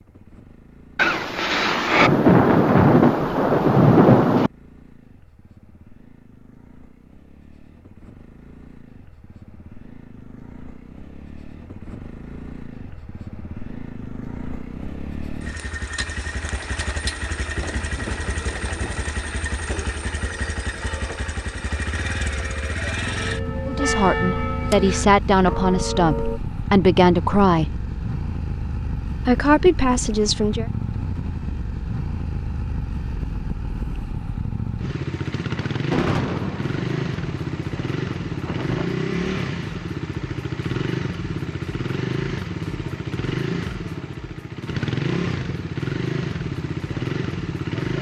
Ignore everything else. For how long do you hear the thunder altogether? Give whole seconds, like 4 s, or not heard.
9 s.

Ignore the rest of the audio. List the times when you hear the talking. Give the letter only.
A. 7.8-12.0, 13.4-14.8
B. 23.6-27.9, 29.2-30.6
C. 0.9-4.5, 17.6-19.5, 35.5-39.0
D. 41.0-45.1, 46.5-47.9
B.